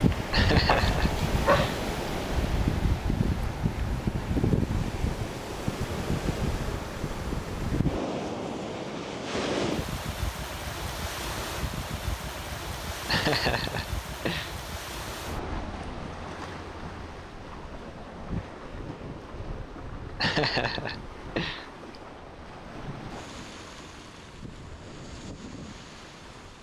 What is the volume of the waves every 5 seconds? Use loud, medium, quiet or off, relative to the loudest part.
loud, loud, medium, medium, quiet, quiet.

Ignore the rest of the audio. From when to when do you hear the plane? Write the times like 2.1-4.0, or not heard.
not heard.